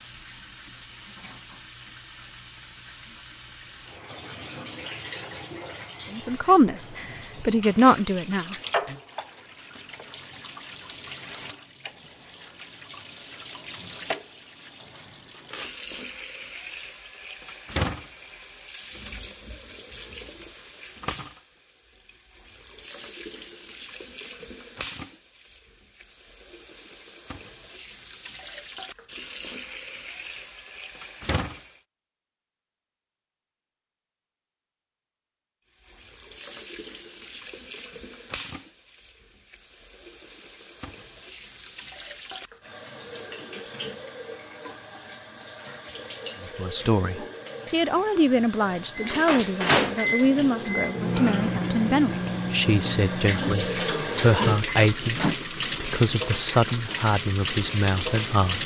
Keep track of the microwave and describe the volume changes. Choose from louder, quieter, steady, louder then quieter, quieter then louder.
quieter.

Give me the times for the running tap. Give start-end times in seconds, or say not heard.
0.0-31.8, 35.8-58.6.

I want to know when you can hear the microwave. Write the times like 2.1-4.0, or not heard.
49.0-55.4.